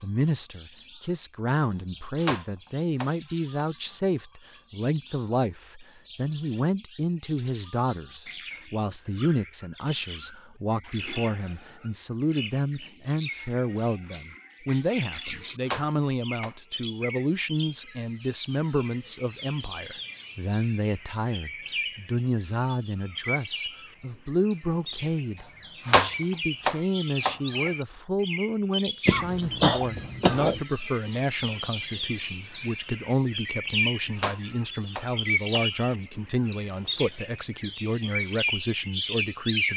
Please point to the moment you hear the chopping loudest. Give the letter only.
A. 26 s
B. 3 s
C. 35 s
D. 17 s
A.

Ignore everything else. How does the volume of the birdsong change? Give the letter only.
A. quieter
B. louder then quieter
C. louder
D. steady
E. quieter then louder
C.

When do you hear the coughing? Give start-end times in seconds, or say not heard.
29.1-30.6.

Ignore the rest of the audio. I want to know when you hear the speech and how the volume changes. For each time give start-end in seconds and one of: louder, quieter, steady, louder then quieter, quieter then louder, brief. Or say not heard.
0.0-39.7 steady.